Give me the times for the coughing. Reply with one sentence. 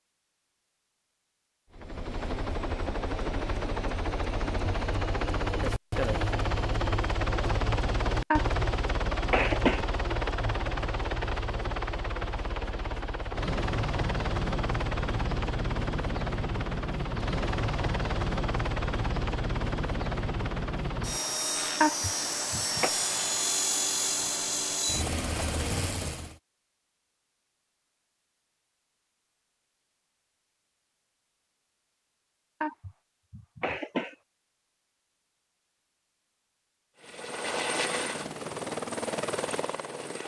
You can hear the coughing from 8.3 to 9.8 s, from 21.8 to 22.9 s and from 32.6 to 34.1 s.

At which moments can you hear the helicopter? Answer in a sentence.
The helicopter can be heard from 1.8 to 26.4 s and from 37.0 to 40.2 s.